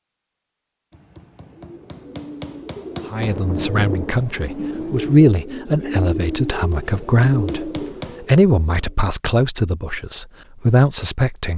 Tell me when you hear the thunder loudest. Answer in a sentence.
The loudest moment of the thunder is at 4 seconds.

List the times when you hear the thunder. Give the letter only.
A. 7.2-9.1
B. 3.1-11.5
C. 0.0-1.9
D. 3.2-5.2
D.